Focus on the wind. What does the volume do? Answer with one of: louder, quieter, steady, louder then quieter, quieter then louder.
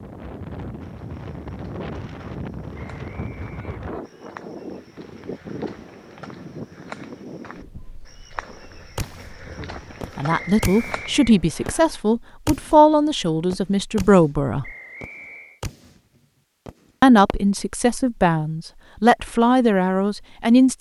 quieter.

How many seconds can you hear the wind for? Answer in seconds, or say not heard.
11 s.